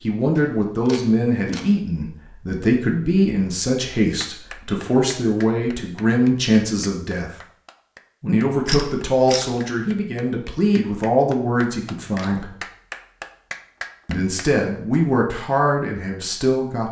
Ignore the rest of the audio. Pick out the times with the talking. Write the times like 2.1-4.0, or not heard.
0.0-7.3, 8.2-12.6, 14.1-16.8.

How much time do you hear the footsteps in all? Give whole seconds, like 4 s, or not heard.
not heard.